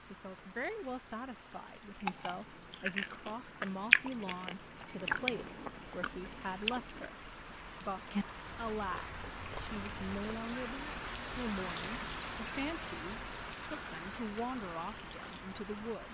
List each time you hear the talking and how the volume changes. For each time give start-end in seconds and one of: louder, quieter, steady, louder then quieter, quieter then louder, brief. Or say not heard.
0.1-16.0 steady.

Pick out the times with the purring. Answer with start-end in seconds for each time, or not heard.
not heard.